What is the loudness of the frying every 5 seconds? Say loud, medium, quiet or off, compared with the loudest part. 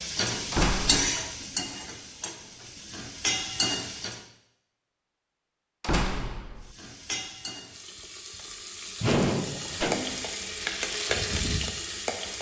loud, medium, loud.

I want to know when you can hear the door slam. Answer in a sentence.
You can hear the door slam from 0.5 to 1.1 s, from 5.8 to 6.6 s and from 9.0 to 10.2 s.